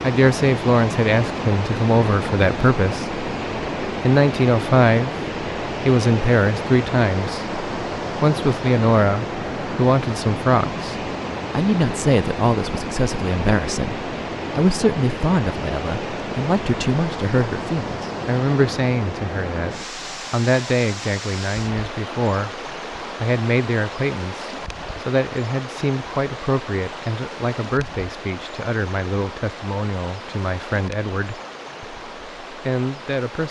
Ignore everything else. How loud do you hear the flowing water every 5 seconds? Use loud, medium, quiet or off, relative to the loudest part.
loud, loud, loud, loud, medium, medium, medium.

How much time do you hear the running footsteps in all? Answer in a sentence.
The running footsteps can't be heard in this clip.